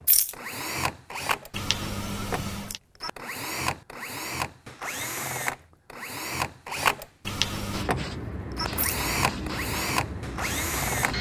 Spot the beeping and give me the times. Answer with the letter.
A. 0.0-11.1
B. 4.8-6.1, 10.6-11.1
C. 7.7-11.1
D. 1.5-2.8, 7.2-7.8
D.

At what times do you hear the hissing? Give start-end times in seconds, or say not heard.
7.7-11.1.